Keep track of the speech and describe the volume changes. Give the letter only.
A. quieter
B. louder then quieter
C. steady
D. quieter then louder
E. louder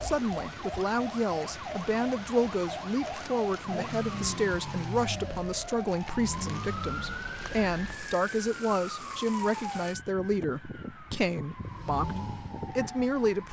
C.